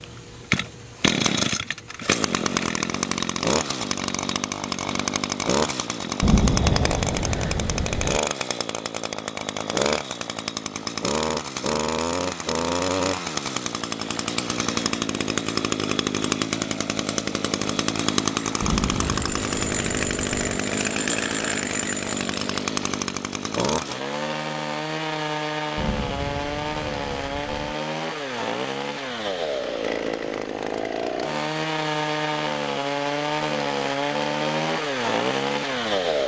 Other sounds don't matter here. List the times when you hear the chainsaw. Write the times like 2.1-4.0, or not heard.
0.0-36.2.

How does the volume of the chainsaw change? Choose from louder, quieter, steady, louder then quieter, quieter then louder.
steady.